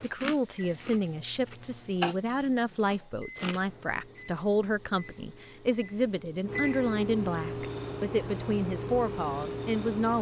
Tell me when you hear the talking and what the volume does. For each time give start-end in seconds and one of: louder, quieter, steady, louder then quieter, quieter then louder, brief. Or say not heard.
0.0-10.1 steady.